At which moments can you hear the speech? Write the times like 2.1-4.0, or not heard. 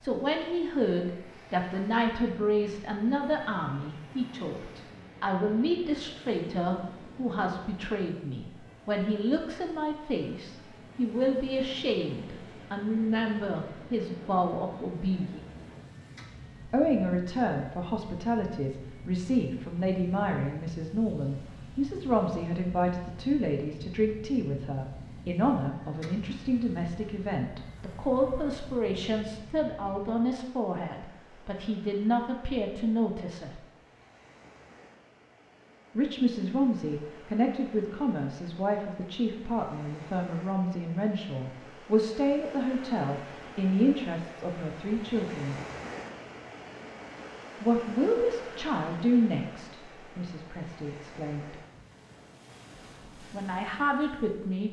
0.0-15.4, 16.6-33.6, 36.0-45.5, 47.6-51.5, 53.3-54.6.